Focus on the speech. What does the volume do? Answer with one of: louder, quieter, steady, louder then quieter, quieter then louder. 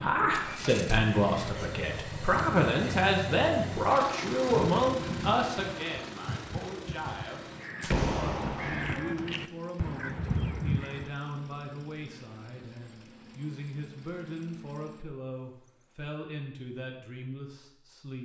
quieter.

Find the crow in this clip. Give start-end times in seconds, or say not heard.
4.4-11.1.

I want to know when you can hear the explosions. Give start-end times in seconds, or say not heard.
7.8-9.0.